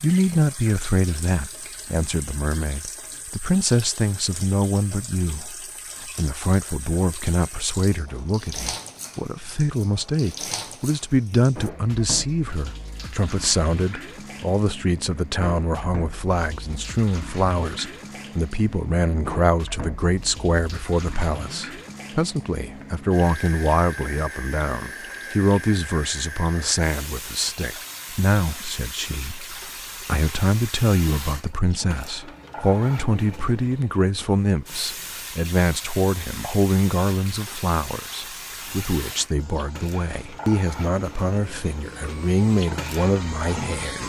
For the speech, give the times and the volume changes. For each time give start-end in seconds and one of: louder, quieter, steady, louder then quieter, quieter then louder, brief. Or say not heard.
0.0-44.0 steady.